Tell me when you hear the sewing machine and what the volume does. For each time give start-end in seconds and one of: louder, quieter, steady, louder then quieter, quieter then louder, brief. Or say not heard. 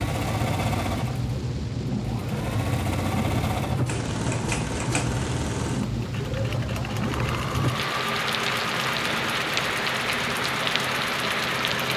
0.0-11.9 steady.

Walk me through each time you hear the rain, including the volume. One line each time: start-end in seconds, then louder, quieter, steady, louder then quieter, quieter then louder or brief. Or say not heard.
0.0-11.9 steady.